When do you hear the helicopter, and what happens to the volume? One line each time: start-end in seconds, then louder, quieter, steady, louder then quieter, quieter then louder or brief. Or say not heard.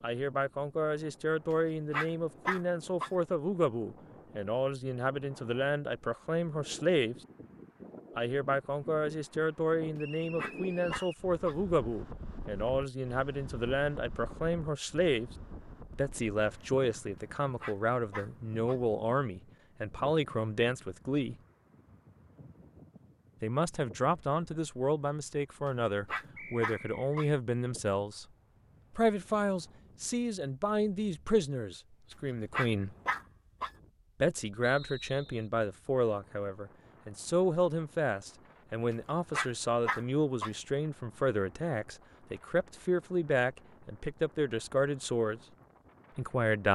not heard.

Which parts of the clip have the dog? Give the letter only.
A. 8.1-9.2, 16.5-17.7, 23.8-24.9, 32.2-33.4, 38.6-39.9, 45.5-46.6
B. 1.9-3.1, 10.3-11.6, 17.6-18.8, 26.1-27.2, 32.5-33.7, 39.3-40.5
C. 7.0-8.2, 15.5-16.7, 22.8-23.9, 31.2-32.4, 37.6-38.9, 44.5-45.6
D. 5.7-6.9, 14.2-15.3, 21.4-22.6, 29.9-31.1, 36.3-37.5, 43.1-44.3
B.